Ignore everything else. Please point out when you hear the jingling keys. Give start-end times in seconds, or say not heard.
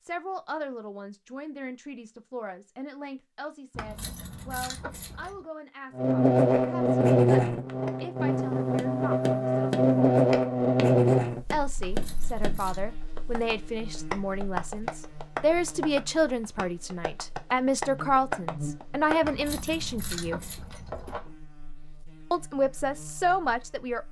3.7-5.5, 11.8-12.8, 19.2-21.3.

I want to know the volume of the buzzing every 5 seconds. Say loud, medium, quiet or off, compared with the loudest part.
off, loud, loud, quiet, quiet.